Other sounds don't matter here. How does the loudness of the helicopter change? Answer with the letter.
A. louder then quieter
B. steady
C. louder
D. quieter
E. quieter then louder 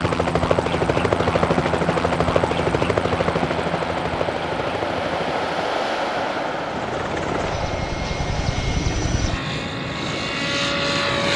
E.